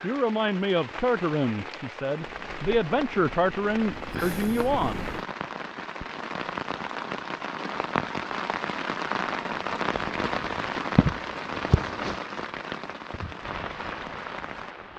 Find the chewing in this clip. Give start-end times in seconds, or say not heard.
not heard.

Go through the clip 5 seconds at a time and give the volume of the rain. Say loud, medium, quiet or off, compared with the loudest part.
medium, loud, loud.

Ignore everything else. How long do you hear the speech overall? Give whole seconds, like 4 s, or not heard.
5 s.